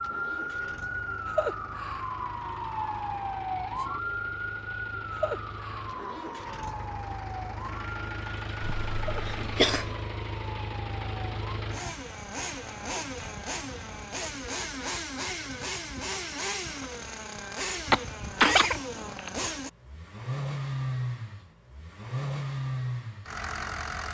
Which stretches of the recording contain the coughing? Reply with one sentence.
You can hear the coughing from 8.6 to 9.9 s and from 17.9 to 19.3 s.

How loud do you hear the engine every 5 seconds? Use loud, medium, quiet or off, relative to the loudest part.
quiet, medium, loud, loud, loud.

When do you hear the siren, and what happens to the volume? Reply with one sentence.
You can hear the siren from 0.0 to 11.6 s, getting quieter.